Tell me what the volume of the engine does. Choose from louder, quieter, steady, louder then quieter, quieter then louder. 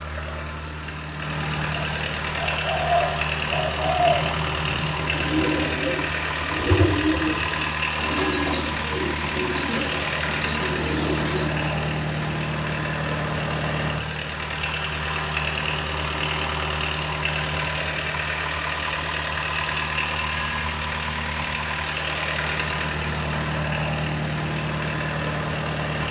steady.